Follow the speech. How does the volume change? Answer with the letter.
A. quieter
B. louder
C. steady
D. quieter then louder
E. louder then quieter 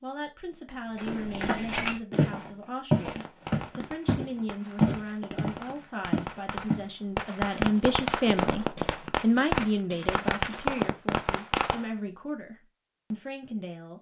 E.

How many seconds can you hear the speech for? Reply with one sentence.
You can hear the speech for 14 seconds altogether.